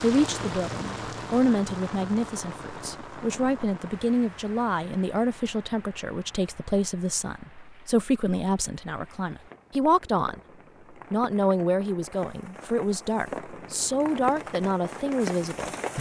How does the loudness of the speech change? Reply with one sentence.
The loudness of the speech stays about the same.